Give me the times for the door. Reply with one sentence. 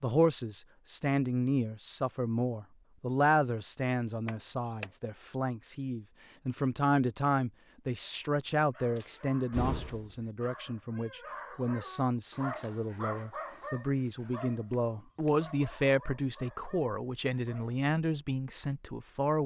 The door can be heard from 4.2 to 4.9 s, from 8.9 to 10.2 s and from 14.7 to 15.3 s.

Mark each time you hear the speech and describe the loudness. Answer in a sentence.
The speech can be heard from 0.0 to 19.4 s, at a steady volume.